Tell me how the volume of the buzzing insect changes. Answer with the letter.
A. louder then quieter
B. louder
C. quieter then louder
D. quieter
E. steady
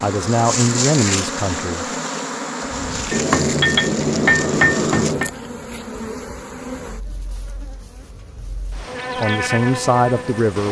C.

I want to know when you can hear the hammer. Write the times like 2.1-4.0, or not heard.
3.1-5.3.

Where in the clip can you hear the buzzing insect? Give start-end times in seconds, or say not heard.
0.0-10.6.